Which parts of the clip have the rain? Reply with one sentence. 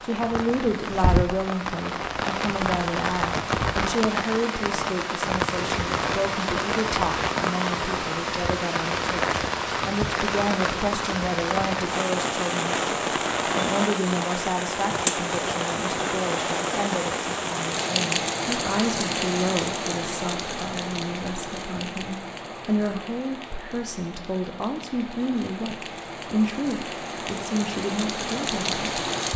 The rain can be heard from 0.0 to 29.3 s.